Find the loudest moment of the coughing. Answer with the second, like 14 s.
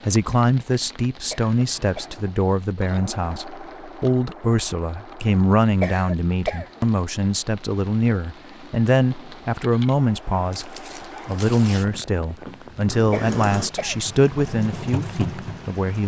6 s.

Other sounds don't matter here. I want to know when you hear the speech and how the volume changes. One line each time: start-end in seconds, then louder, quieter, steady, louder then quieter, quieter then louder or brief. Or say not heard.
0.0-16.0 steady.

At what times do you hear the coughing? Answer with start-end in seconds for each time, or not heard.
1.3-2.1, 5.8-6.8, 13.1-14.1.